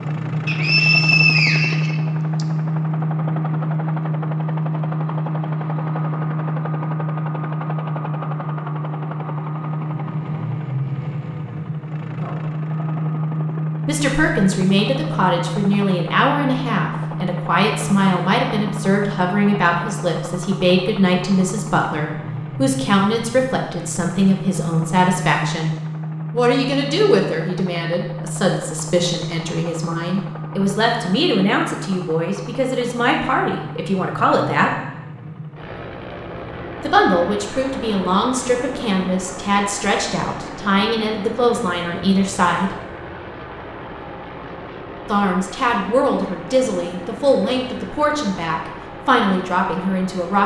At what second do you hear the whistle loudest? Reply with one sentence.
The volume of the whistle peaks at 1 second.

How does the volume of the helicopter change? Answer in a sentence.
The loudness of the helicopter goes down.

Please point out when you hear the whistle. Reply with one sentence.
You can hear the whistle from 0.5 to 2.5 s.